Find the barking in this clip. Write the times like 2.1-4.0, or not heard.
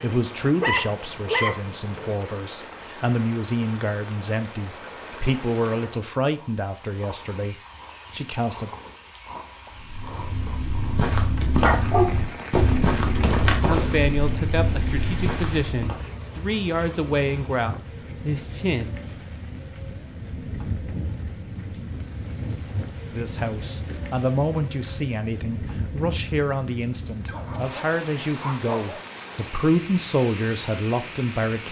0.6-2.1, 11.6-13.3, 27.2-29.0.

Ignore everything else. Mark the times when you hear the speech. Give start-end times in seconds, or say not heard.
0.0-8.7, 13.7-18.9, 23.1-31.6.